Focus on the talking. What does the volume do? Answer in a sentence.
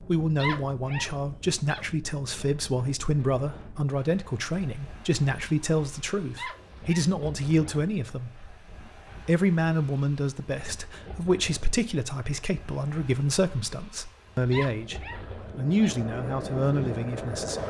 The loudness of the talking stays about the same.